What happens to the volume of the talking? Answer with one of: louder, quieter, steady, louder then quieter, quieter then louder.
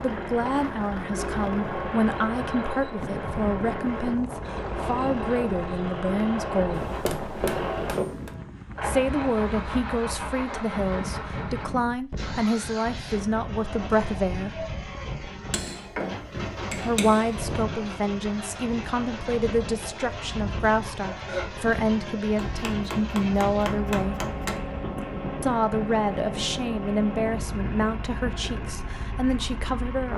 steady.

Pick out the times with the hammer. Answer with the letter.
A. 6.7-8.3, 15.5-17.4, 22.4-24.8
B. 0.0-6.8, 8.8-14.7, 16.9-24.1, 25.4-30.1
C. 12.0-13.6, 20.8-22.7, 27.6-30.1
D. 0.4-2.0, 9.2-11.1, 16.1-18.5
A.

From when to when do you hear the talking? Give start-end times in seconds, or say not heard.
0.0-6.8, 8.8-14.7, 16.9-24.1, 25.4-30.1.